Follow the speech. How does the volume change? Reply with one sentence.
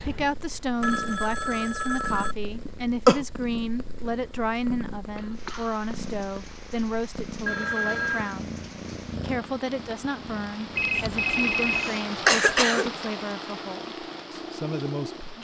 The loudness of the speech stays about the same.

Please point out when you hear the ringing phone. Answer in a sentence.
The ringing phone can be heard from 0.8 to 2.4 s, from 7.5 to 8.3 s and from 10.8 to 11.9 s.